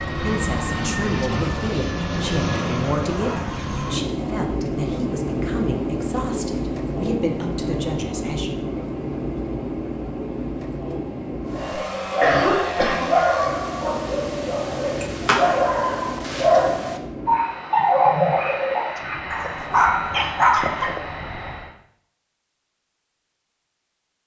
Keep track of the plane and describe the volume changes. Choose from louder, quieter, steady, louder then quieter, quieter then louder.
quieter.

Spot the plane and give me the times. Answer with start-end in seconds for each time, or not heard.
0.0-21.8.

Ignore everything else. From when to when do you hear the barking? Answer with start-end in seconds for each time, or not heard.
11.5-21.0.